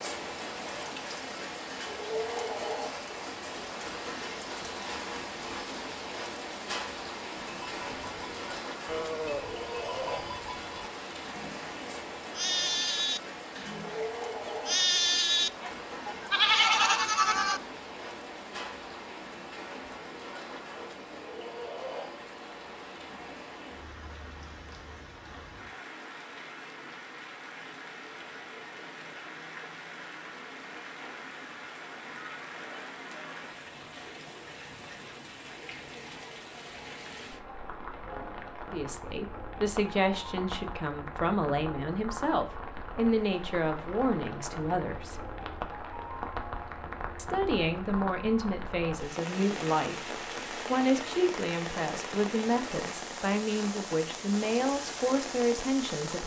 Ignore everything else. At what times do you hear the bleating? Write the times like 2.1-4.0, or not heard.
7.4-17.6.